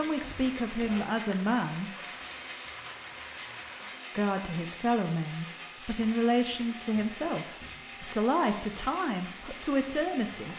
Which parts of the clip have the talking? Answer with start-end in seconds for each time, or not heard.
0.0-1.9, 4.2-10.5.